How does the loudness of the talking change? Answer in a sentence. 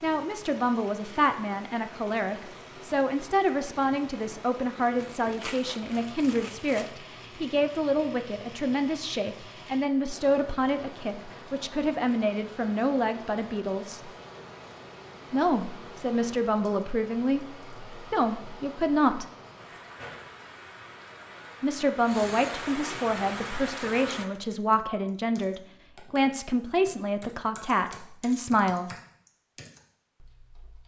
The volume of the talking stays about the same.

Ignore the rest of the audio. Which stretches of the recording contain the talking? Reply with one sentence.
You can hear the talking from 0.0 to 14.1 s, from 15.3 to 19.2 s and from 21.6 to 28.9 s.